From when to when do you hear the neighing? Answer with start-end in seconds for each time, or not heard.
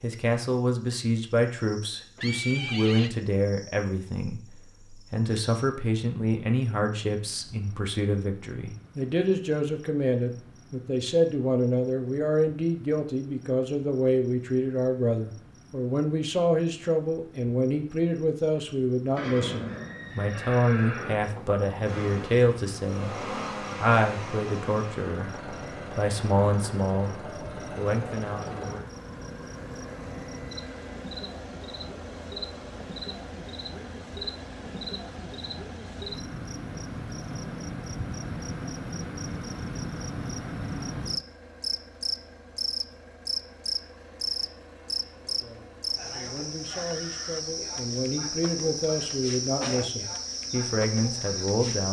2.1-3.1, 19.1-21.2, 46.6-47.5.